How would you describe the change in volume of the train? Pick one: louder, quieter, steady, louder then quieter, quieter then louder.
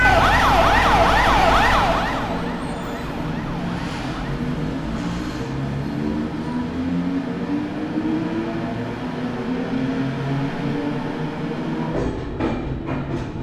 steady.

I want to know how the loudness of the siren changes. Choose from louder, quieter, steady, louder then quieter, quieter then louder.
quieter.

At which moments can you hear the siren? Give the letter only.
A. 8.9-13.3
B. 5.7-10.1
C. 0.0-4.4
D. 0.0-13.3
C.